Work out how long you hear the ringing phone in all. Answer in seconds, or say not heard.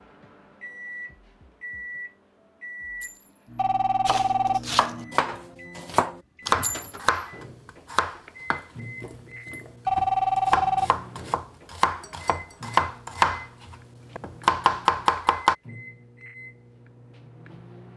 2 s.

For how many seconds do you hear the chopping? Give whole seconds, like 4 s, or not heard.
11 s.